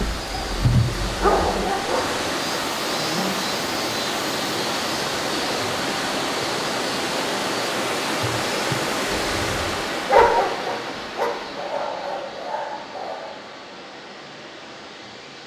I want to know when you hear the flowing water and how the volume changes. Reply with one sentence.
You can hear the flowing water from 0.0 to 15.4 s, getting quieter.